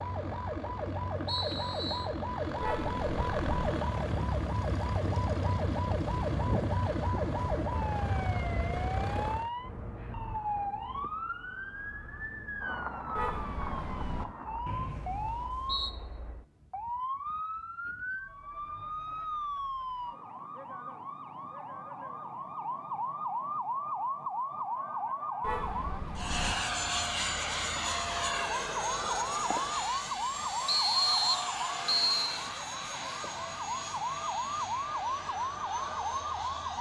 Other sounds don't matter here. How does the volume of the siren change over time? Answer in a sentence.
The loudness of the siren stays about the same.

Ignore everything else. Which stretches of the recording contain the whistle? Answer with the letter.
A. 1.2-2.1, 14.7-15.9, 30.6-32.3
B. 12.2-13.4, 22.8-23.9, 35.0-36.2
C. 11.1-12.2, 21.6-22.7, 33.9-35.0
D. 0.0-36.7
A.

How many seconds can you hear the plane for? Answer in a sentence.
You can hear the plane for 20 seconds altogether.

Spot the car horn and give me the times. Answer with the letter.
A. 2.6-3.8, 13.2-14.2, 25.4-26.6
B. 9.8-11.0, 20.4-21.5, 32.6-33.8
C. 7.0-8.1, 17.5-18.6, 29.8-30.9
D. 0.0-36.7
A.